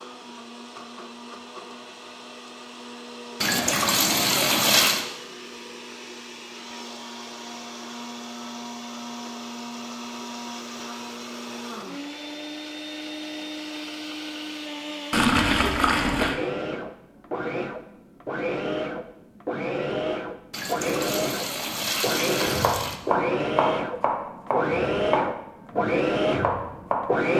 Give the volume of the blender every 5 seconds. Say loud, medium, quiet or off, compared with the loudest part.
quiet, quiet, medium, medium, loud, loud.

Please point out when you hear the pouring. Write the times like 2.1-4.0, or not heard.
3.4-5.0, 15.1-16.4, 20.5-23.0.